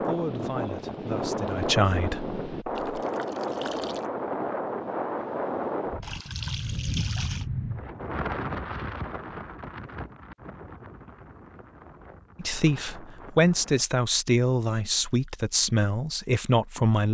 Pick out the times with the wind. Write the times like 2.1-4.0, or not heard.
0.0-13.8.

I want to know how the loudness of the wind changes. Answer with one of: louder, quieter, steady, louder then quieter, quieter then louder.
quieter.